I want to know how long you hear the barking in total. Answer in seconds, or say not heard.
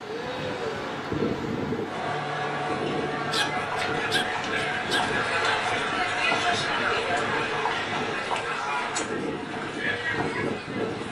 2 s.